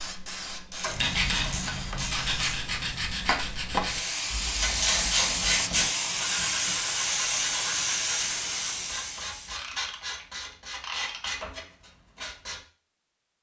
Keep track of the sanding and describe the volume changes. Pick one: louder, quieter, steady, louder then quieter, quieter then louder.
quieter.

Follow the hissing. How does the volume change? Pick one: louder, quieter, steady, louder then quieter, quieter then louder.
louder.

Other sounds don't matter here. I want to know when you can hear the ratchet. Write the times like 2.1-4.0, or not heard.
0.8-2.5, 4.6-6.8, 9.6-11.3.